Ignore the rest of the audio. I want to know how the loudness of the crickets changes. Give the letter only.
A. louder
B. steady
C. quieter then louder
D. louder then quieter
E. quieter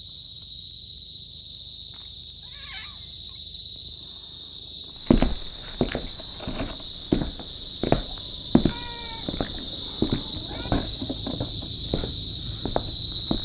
A.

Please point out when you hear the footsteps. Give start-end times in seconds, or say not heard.
5.0-13.4.